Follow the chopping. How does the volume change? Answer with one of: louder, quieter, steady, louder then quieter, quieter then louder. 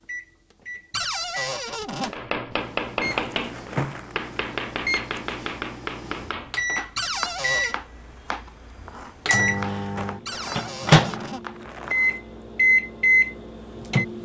quieter.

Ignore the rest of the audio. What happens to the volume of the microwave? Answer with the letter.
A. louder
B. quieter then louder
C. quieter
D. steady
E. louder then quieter
A.